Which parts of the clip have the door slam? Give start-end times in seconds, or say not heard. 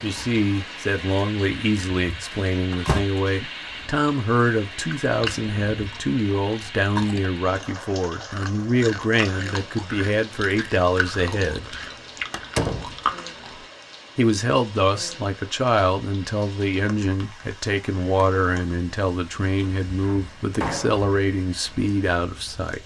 2.3-3.0, 12.3-12.9, 19.4-21.1.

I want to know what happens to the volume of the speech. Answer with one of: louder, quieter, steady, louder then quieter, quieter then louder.
steady.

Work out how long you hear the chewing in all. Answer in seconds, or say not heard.
9 s.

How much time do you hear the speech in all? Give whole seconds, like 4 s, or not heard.
20 s.